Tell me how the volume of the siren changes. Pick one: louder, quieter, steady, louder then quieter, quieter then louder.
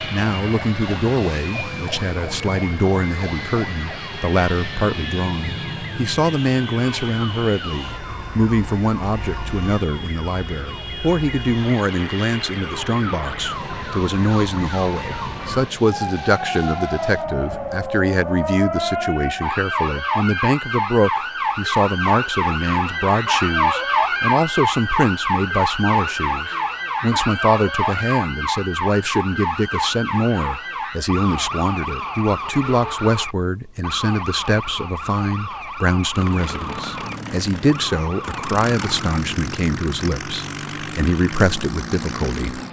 louder then quieter.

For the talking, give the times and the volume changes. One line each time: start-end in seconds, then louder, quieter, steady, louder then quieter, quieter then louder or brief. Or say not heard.
0.1-42.6 steady.